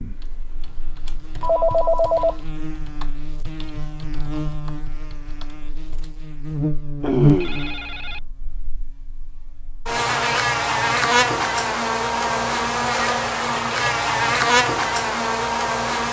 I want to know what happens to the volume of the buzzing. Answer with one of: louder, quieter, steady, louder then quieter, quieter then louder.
louder.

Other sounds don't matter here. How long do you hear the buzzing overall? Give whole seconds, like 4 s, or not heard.
16 s.